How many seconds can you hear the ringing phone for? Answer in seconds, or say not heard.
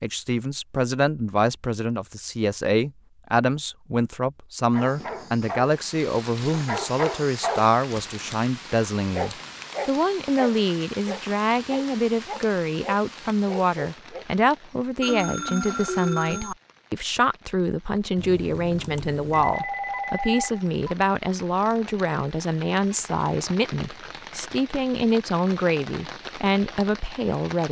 4 s.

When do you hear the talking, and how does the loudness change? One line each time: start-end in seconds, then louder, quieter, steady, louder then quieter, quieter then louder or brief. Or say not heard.
0.0-27.6 steady.